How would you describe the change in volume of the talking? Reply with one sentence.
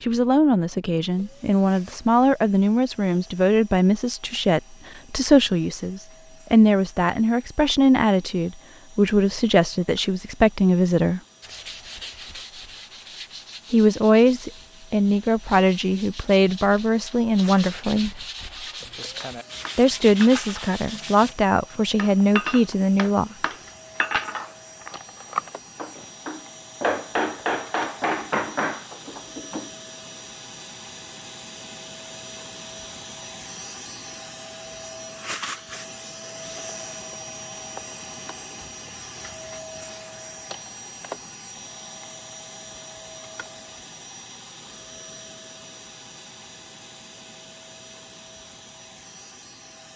The volume of the talking stays about the same.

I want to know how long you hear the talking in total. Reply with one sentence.
The talking can be heard for 19 seconds in total.